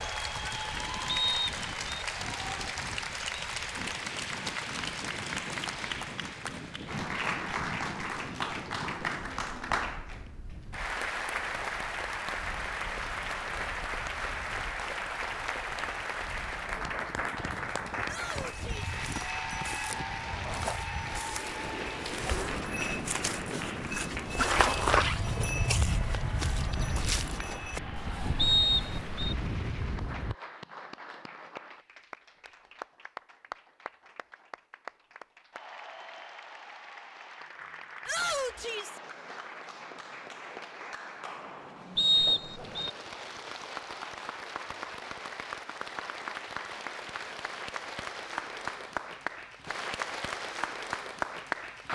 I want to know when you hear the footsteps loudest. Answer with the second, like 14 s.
25 s.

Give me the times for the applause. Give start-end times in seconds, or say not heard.
0.0-51.9.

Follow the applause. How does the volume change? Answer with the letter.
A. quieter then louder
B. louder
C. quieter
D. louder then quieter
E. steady
A.